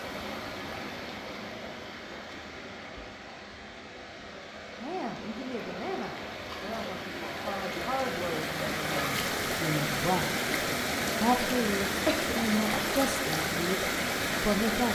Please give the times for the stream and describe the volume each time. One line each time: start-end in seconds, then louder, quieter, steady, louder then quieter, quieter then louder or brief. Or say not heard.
0.0-14.9 louder.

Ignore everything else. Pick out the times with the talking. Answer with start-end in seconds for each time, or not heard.
4.8-14.9.